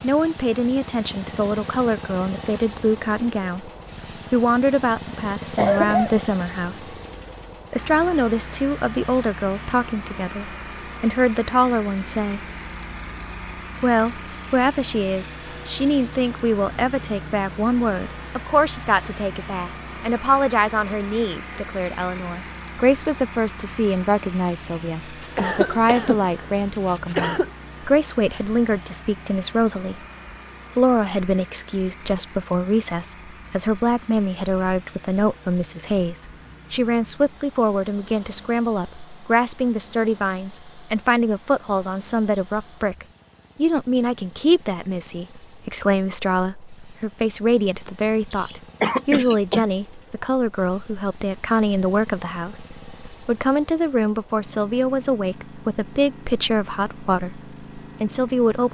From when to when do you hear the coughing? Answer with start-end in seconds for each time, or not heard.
5.5-6.2, 25.2-27.5, 48.3-49.7.